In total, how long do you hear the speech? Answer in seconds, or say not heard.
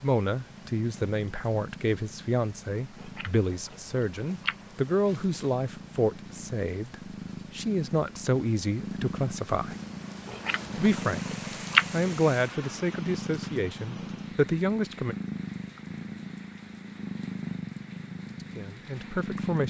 15 s.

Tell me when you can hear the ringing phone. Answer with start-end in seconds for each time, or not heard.
not heard.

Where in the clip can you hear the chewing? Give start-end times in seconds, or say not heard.
3.0-5.0, 10.2-11.9.